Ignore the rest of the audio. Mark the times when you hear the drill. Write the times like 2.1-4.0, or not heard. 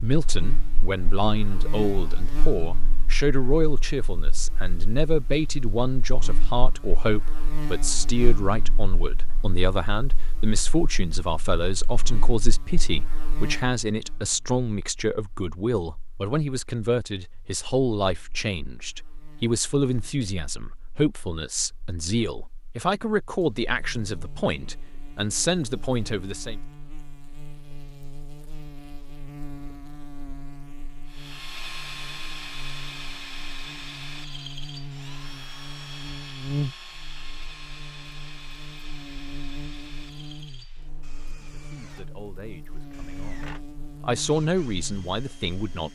31.1-45.9.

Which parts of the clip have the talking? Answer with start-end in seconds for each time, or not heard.
0.0-26.6, 41.2-45.9.